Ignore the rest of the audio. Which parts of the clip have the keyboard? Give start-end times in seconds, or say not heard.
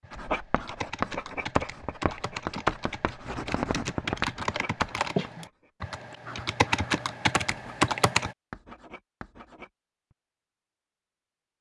0.0-8.3.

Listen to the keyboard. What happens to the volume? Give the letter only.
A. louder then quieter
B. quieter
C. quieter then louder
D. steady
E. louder
E.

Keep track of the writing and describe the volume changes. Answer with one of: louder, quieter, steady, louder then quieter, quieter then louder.
quieter.